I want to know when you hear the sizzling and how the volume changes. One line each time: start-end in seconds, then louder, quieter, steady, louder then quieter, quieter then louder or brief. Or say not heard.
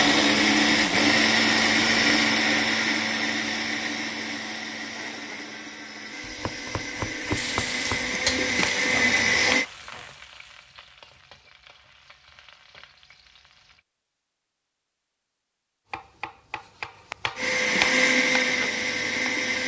7.3-13.8 quieter.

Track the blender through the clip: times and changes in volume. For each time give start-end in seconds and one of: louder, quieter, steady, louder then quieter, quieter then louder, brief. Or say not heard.
0.0-9.7 quieter then louder
17.4-19.6 brief.